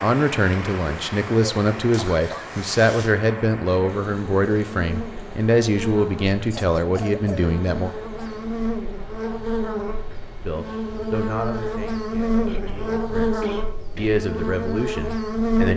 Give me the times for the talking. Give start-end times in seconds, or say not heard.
0.0-7.9, 10.4-15.7.